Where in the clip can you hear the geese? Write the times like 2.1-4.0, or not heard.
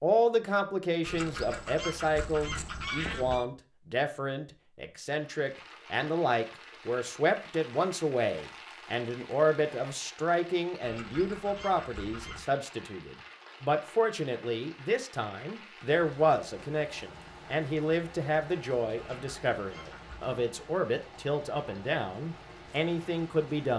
1.0-3.5, 10.8-12.4, 18.9-20.4.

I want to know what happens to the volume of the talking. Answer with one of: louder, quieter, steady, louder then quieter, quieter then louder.
steady.